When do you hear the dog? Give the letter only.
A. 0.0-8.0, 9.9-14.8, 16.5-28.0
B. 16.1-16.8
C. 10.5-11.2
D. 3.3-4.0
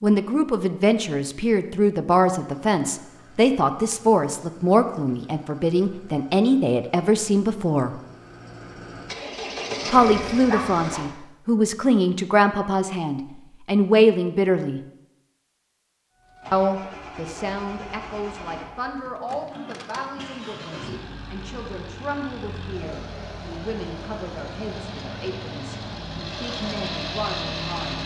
C.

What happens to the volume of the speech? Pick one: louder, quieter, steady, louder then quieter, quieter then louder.
quieter.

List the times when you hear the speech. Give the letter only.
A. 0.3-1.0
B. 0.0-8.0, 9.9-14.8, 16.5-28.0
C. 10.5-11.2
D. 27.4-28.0
B.